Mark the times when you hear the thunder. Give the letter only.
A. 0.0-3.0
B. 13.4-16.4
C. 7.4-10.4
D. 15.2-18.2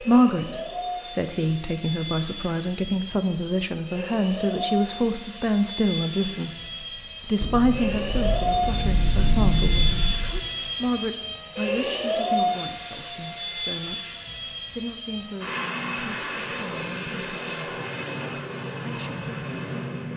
C.